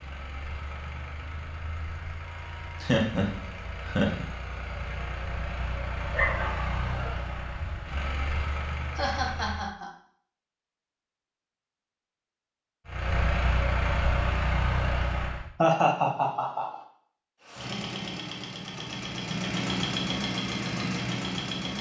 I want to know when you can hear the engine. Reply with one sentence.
The engine can be heard from 0.0 to 9.8 s, from 12.8 to 15.5 s and from 17.4 to 21.7 s.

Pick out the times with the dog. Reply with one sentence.
You can hear the dog from 6.1 to 7.1 s.